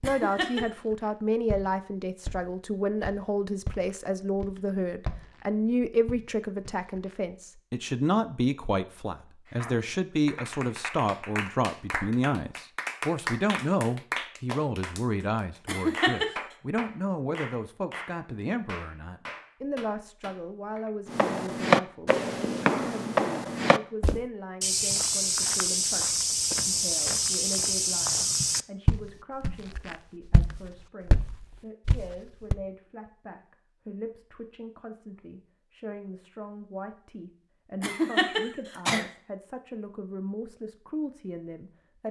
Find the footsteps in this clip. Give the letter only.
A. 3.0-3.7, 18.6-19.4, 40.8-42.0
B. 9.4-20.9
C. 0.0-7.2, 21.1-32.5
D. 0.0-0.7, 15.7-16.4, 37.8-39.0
C.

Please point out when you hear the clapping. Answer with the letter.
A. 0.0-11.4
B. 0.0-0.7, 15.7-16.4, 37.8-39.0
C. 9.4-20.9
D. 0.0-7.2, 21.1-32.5
C.